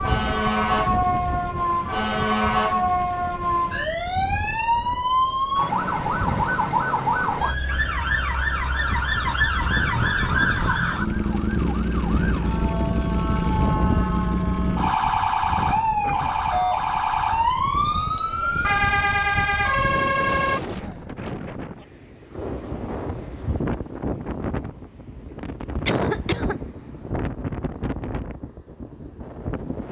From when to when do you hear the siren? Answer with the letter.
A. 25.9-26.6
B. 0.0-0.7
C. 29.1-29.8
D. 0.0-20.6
D.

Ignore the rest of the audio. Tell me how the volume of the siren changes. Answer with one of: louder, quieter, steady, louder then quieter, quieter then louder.
steady.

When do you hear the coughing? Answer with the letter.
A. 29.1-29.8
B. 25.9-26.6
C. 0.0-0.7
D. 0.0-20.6
B.